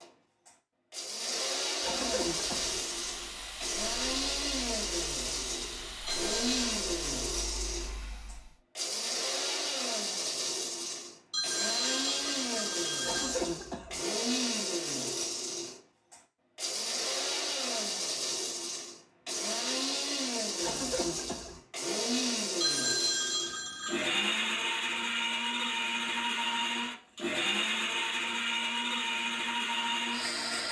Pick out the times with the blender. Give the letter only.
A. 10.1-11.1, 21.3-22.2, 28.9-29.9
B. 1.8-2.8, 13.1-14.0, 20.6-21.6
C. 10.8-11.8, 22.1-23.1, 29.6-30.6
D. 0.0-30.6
D.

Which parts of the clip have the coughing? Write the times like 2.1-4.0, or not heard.
1.8-2.8, 13.1-14.0, 20.6-21.6.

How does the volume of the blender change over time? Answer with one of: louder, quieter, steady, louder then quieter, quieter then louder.
steady.